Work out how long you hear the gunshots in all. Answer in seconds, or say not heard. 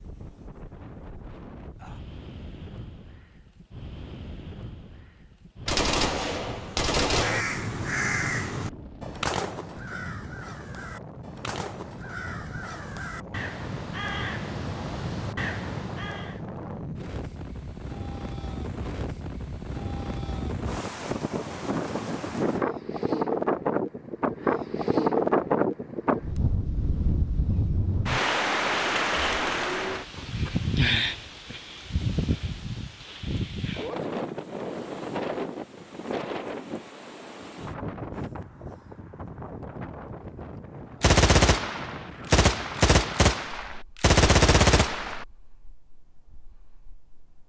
6 s.